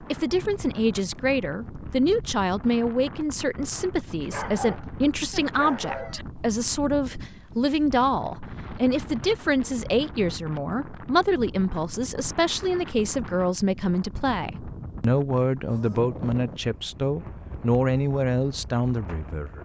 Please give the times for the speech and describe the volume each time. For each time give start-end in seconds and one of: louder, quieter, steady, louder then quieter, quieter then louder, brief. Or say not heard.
0.1-19.5 steady.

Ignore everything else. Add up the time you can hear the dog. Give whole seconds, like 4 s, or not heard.
2 s.